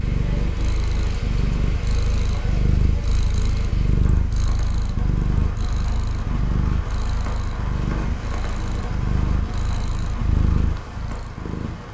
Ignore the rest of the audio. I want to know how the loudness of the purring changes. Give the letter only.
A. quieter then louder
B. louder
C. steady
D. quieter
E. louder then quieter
C.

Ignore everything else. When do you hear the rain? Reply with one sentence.
You can hear the rain from 0.0 to 11.9 s.